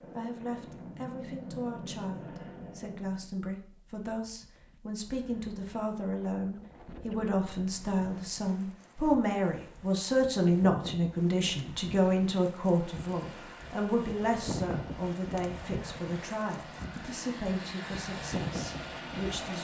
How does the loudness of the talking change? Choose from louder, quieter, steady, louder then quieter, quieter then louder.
louder then quieter.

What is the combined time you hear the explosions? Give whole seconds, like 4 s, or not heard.
3 s.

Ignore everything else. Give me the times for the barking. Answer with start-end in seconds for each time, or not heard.
not heard.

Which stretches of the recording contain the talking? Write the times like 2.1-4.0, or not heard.
0.1-19.5.